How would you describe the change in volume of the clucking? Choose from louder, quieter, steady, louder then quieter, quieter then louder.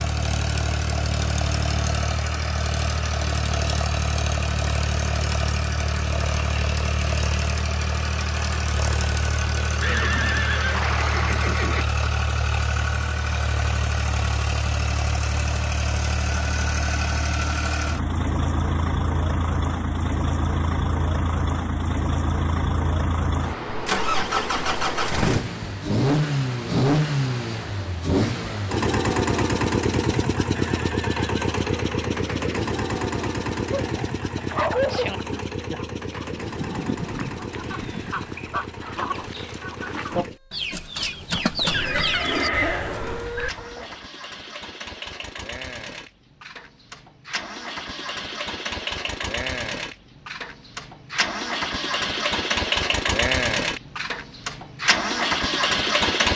louder.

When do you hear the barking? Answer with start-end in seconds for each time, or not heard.
33.7-35.2.